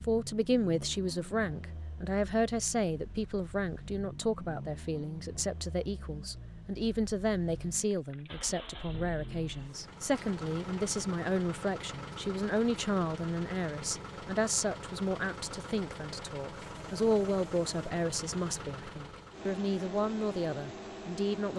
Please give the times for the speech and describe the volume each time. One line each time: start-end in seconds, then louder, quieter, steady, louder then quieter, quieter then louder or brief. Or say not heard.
0.0-21.5 steady.